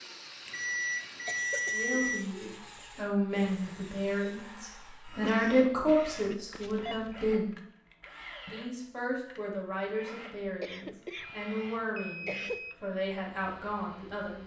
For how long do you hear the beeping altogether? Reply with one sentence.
The beeping can be heard for 4 seconds in total.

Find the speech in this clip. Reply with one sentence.
You can hear the speech from 1.7 to 7.6 s and from 8.4 to 14.4 s.